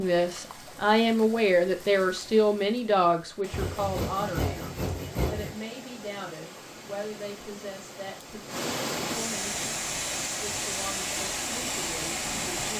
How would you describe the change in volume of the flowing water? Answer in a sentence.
The loudness of the flowing water goes up.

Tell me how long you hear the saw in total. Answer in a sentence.
You can hear the saw for 2 seconds altogether.